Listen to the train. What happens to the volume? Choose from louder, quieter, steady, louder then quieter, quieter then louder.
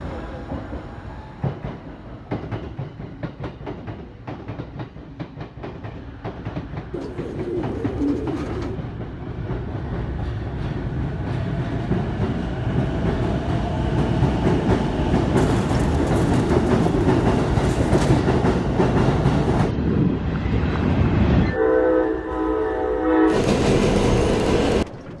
louder.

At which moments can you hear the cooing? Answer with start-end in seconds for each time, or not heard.
6.9-8.8, 15.3-18.2.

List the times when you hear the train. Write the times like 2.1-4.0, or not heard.
0.0-25.1.